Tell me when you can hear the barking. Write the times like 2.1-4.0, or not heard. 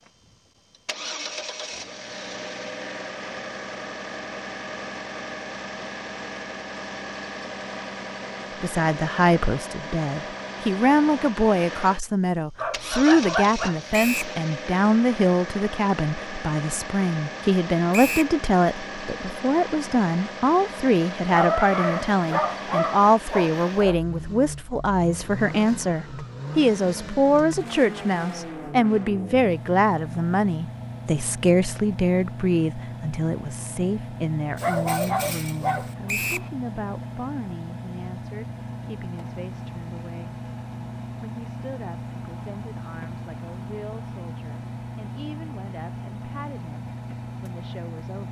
12.6-13.8, 21.3-24.0, 34.5-36.0.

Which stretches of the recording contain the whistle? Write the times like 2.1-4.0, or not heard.
13.9-14.3, 17.9-18.4, 36.0-36.5.